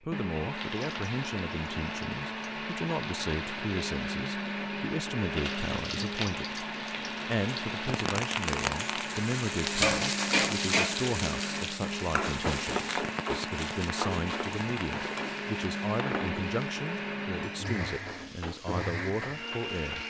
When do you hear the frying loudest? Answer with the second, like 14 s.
10 s.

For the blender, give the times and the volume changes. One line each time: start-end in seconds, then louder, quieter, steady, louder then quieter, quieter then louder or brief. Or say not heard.
0.0-20.0 steady.